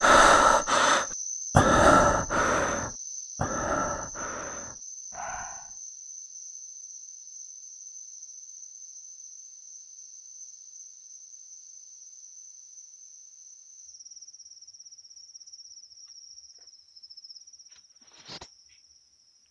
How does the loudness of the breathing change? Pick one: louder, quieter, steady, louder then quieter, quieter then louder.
quieter.